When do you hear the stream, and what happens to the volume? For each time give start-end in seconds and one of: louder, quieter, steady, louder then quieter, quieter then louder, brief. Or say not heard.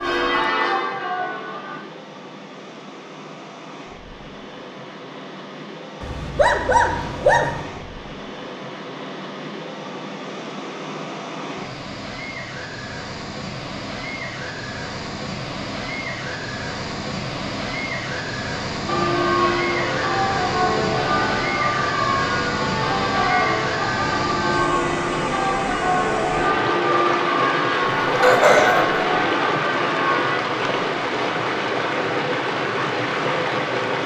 0.0-34.0 louder.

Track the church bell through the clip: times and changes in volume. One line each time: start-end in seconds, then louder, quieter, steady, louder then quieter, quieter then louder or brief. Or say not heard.
0.0-1.9 brief
18.9-30.4 steady.